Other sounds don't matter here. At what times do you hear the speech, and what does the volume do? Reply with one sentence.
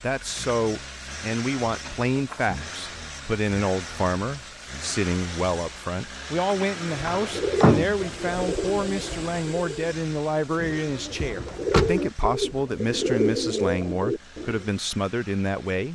You can hear the speech from 0.0 to 15.9 s, at a steady volume.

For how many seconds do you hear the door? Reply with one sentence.
You can hear the door for 3 seconds altogether.